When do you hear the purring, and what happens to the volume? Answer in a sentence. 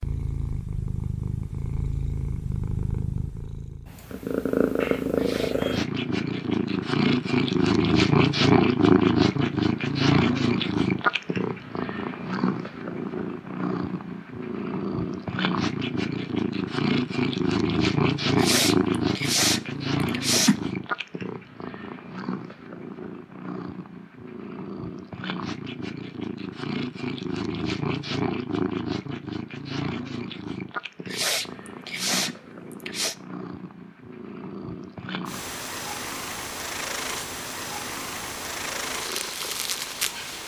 The purring can be heard from 0.0 to 40.4 s, getting quieter.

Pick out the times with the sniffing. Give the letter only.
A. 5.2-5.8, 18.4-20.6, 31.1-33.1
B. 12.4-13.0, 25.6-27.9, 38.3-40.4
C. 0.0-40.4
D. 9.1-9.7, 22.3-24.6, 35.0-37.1
A.